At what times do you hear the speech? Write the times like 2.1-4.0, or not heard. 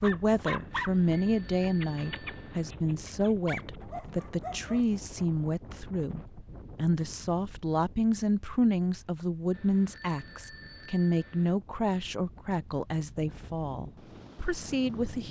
0.0-15.2.